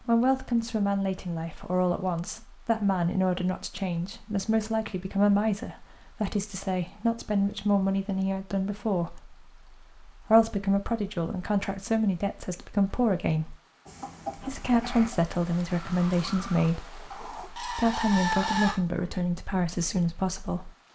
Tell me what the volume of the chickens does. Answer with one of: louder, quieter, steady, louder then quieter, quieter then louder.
quieter then louder.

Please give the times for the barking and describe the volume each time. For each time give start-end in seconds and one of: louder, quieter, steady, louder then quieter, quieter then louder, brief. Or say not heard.
not heard.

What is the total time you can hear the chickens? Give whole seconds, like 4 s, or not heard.
5 s.